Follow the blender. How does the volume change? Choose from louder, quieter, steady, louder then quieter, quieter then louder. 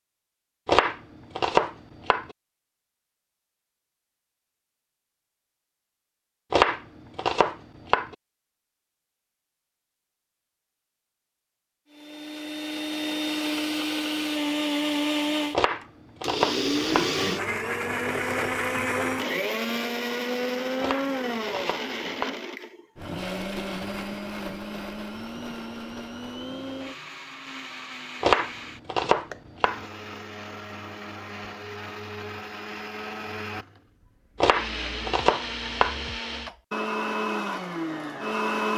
quieter then louder.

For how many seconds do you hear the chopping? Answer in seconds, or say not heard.
10 s.